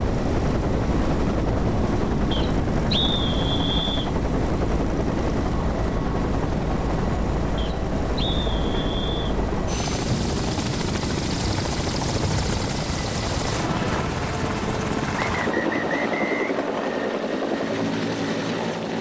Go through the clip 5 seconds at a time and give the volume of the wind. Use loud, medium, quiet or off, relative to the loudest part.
loud, loud, medium, off.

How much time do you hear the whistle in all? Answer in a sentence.
You can hear the whistle for 6 seconds altogether.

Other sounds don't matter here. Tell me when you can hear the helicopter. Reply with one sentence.
You can hear the helicopter from 0.0 to 18.9 s.